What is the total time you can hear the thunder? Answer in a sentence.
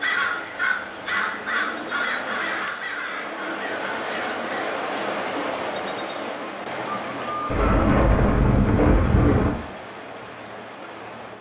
The thunder can be heard for 2 seconds in total.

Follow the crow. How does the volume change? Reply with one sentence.
The volume of the crow goes down.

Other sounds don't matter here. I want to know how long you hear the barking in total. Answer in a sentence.
You can't hear the barking here.